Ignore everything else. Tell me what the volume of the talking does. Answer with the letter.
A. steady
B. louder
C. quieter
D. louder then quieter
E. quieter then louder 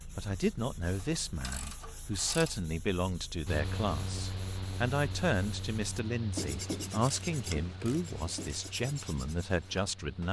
A.